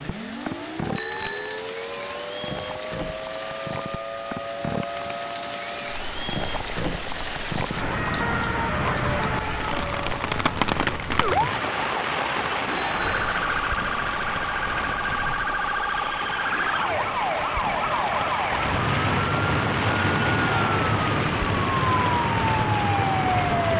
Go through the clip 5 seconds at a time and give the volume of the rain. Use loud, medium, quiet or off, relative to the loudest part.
medium, loud, loud, loud, loud.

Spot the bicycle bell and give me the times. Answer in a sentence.
You can hear the bicycle bell from 0.9 to 1.6 s, from 12.8 to 13.4 s and from 21.1 to 21.6 s.